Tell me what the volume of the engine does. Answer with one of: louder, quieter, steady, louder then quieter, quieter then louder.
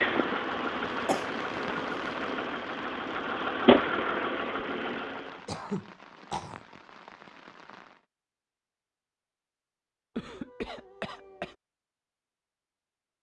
louder then quieter.